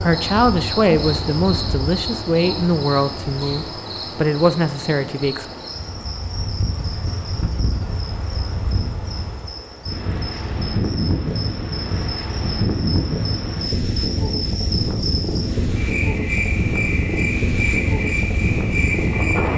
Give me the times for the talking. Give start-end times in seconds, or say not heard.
0.0-5.5.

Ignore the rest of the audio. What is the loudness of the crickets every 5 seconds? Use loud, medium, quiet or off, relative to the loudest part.
loud, medium, medium, loud.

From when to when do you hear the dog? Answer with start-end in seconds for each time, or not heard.
not heard.